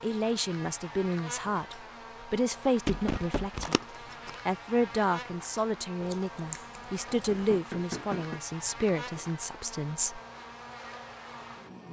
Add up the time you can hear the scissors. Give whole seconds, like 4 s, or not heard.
2 s.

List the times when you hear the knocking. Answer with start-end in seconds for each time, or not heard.
2.8-3.7, 7.3-8.4.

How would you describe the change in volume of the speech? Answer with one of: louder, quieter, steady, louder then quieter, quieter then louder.
steady.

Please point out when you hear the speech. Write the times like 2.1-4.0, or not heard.
0.0-3.8, 4.5-10.2.